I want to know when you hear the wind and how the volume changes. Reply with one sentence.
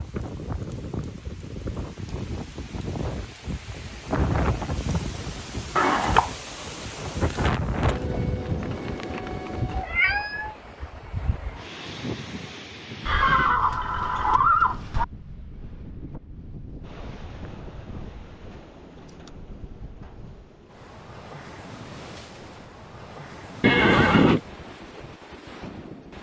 You can hear the wind from 0.0 to 26.1 s, getting quieter.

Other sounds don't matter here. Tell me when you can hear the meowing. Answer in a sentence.
The meowing can be heard from 9.7 to 10.6 s.